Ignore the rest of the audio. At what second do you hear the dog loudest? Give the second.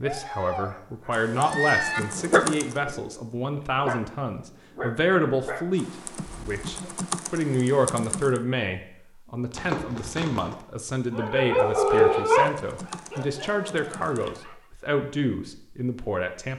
12 s.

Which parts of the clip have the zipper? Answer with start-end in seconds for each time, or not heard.
9.6-10.6.